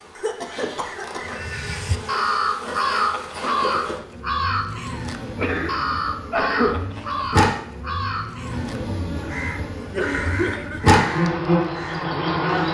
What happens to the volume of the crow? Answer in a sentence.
The volume of the crow goes down.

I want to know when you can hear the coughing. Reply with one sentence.
The coughing can be heard from 0.1 to 1.4 s, from 4.8 to 6.8 s and from 9.8 to 11.0 s.